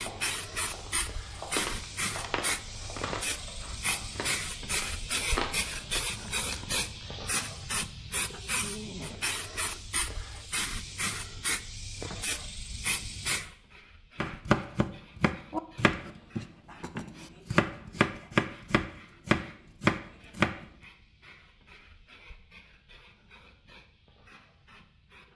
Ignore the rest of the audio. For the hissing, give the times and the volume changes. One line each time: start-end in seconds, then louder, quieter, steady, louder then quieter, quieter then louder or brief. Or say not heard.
0.0-25.3 quieter.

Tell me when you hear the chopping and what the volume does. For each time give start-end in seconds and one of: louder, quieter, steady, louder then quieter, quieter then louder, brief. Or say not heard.
0.0-4.2 louder then quieter
14.2-20.6 louder.